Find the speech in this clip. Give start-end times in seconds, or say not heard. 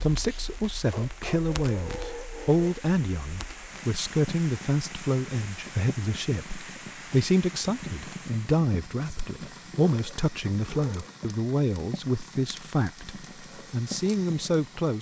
0.0-14.9.